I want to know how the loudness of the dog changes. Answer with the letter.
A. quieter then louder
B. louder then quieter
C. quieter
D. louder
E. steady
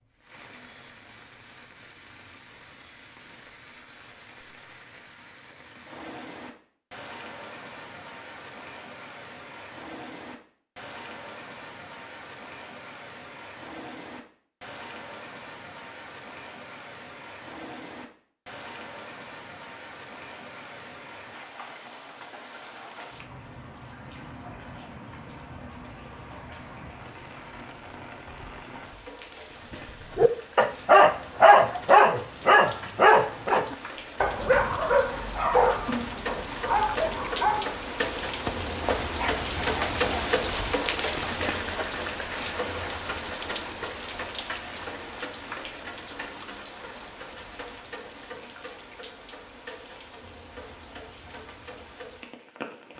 C.